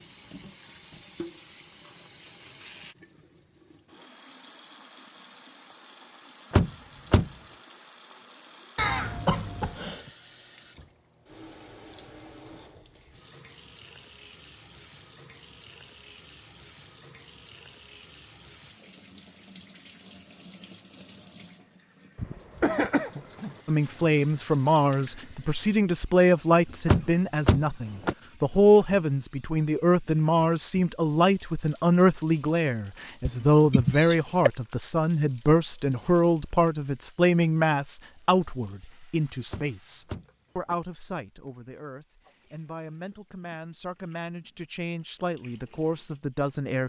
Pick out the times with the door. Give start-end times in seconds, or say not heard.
6.5-7.3, 26.9-28.1, 39.5-40.8.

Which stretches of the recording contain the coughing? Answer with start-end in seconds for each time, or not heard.
8.8-10.1, 22.1-23.6, 33.2-34.5.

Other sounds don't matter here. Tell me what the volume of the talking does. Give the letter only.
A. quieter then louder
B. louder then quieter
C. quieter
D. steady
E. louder
C.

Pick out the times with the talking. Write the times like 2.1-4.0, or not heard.
23.6-46.8.